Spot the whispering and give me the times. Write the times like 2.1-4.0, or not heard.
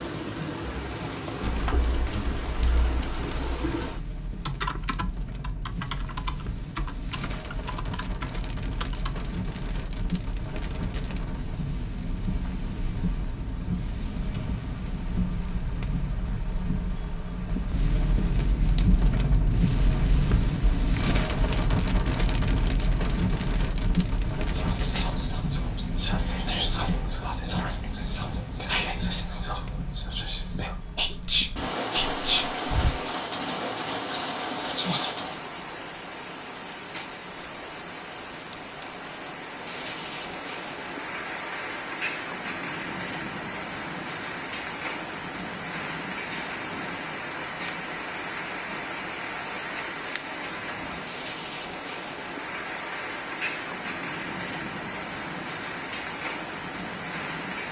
24.5-35.4.